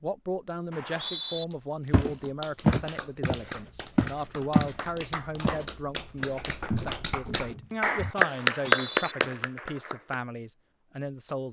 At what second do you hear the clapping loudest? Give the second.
9 s.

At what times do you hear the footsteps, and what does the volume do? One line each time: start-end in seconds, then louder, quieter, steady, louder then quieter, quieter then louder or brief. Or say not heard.
1.9-4.8 brief
5.4-9.4 louder then quieter.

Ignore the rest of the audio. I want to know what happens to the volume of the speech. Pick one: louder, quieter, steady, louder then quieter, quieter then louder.
steady.